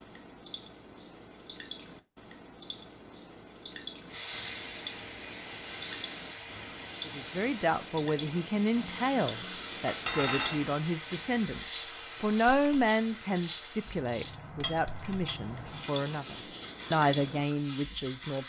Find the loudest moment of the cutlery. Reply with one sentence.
The loudest moment of the cutlery is at 10 seconds.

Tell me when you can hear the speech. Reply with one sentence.
You can hear the speech from 7.0 to 18.4 s.